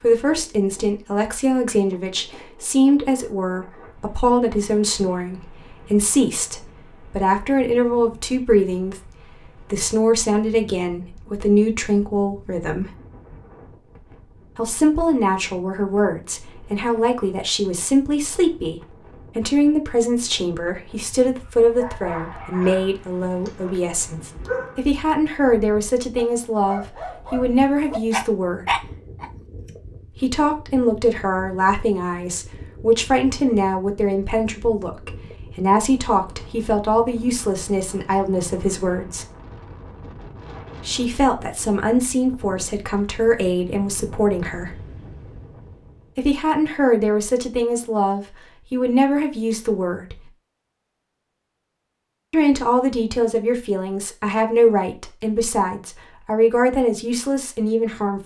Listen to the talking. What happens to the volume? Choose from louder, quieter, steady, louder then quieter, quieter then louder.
steady.